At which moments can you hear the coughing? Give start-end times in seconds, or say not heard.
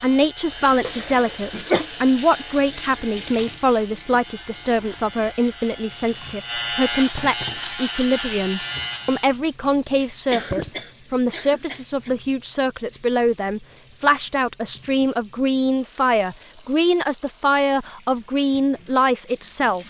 0.8-1.8, 10.3-12.1.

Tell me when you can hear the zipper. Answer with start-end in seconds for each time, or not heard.
not heard.